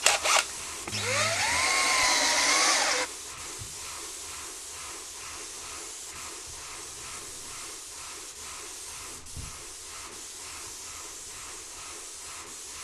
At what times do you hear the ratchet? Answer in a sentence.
You can't hear the ratchet here.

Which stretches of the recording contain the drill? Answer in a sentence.
You can hear the drill from 0.0 to 3.0 s.